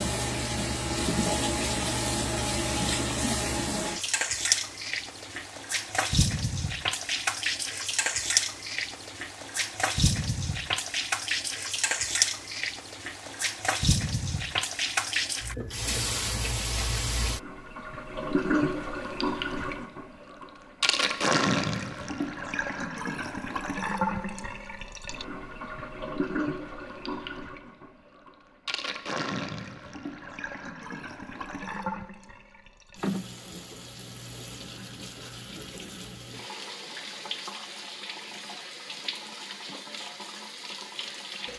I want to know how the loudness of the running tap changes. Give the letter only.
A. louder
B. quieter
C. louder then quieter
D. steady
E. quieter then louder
B.